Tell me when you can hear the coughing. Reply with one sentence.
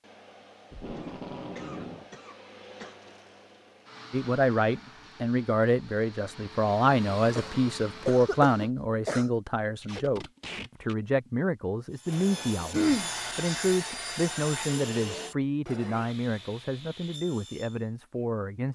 The coughing can be heard from 0.9 to 3.0 s, from 7.3 to 9.3 s and from 12.7 to 13.1 s.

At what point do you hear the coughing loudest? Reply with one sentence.
The volume of the coughing peaks at 13 seconds.